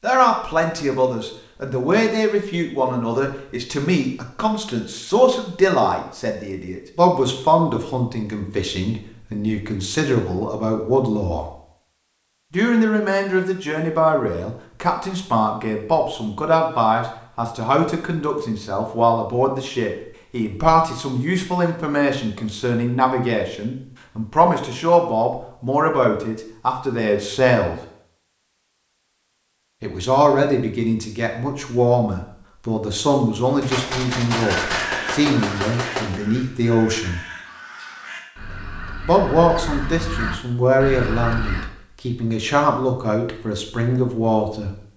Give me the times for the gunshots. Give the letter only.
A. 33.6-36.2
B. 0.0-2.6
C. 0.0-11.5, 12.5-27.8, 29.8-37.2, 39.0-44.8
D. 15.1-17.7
A.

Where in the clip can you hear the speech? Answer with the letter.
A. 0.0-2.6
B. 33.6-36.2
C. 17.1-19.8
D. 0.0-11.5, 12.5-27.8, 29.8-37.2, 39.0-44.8
D.